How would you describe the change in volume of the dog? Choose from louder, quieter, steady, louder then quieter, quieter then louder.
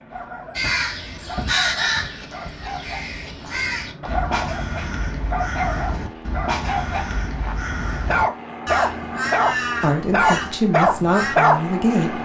louder.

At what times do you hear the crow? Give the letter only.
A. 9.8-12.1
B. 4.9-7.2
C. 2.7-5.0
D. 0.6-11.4
D.